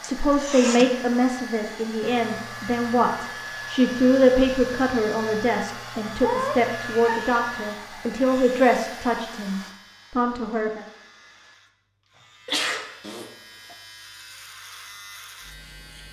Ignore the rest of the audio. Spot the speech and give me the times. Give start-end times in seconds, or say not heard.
0.0-10.8.